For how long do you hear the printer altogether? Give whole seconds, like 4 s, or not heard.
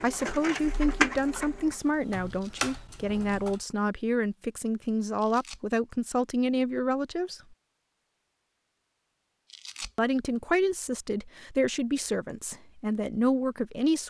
2 s.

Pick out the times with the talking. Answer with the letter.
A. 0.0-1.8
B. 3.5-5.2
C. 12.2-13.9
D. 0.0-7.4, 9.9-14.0
D.